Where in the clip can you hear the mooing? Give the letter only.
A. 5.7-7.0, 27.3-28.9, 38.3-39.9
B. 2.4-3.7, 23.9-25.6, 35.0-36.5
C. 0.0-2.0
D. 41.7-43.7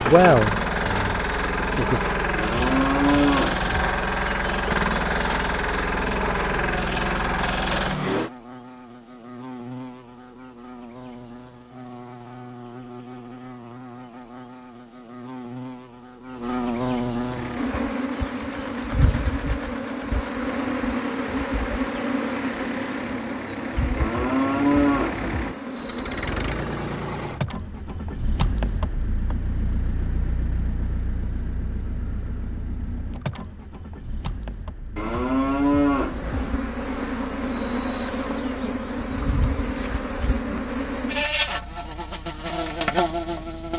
B.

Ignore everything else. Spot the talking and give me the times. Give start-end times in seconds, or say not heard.
0.0-2.0.